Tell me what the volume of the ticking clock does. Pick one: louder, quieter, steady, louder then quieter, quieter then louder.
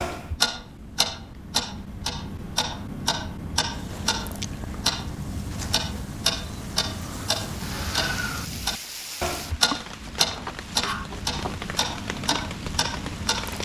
steady.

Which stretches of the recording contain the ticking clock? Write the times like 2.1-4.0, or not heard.
0.0-13.6.